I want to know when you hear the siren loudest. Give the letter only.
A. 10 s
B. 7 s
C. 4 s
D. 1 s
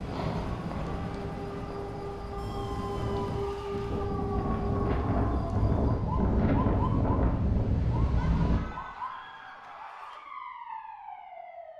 C.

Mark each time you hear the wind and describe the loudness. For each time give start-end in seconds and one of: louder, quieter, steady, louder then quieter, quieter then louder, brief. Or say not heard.
0.0-8.6 louder.